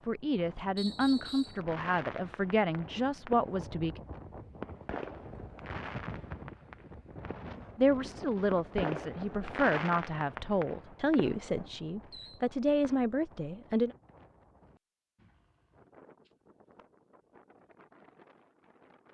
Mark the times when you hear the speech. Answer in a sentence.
The speech can be heard from 0.1 to 4.0 s and from 7.8 to 13.9 s.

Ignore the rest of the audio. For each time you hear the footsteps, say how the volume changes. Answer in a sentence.
The footsteps can't be heard in this clip.